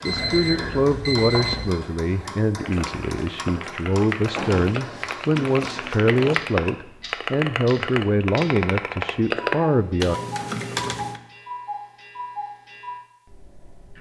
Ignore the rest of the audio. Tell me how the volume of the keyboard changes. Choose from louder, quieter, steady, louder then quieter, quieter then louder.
louder.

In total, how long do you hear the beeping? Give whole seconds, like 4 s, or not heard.
2 s.